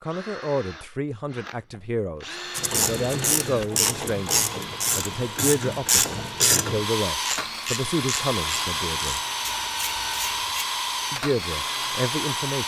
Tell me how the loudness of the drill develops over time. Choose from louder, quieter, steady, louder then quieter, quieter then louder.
louder.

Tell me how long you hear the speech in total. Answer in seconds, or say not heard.
11 s.